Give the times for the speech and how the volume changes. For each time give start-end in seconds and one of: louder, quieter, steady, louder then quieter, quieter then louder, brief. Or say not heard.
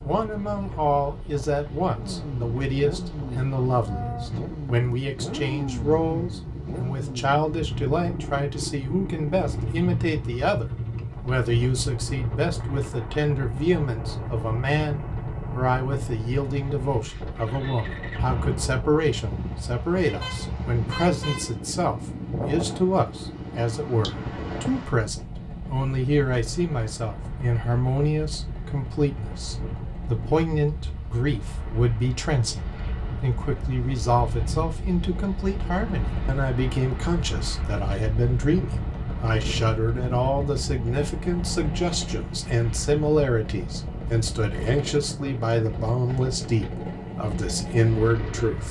0.0-48.6 steady.